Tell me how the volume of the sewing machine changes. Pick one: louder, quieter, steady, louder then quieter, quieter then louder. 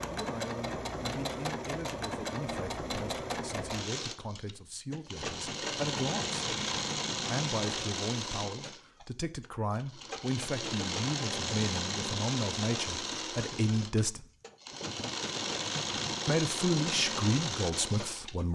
steady.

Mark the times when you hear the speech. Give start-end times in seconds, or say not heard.
0.1-6.3, 7.2-14.2, 16.2-18.5.